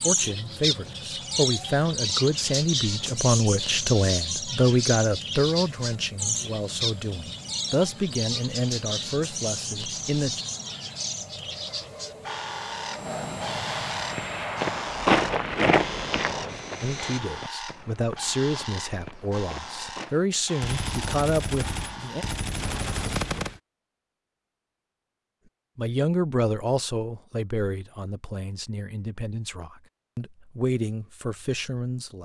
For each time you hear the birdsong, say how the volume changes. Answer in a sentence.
The birdsong can be heard from 0.0 to 22.5 s, getting quieter.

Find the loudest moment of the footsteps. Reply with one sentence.
The loudest moment of the footsteps is at 15 seconds.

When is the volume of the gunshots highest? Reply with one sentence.
The loudest moment of the gunshots is at 23 seconds.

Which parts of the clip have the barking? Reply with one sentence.
You can't hear the barking here.